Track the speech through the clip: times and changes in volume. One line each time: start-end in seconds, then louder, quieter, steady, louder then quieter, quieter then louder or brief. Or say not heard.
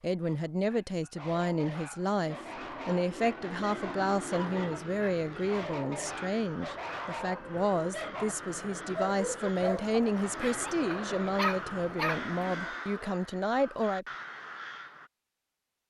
0.0-14.1 steady.